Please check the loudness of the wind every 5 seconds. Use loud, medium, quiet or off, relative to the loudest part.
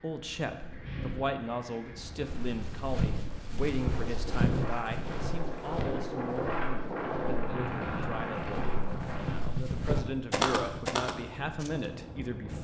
medium, loud, medium.